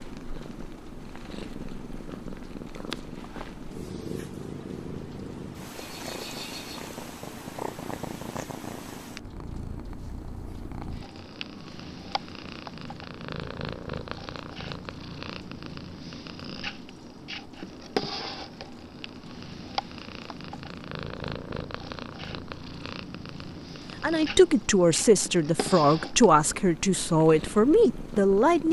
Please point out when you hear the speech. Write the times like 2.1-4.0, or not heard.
24.0-28.6.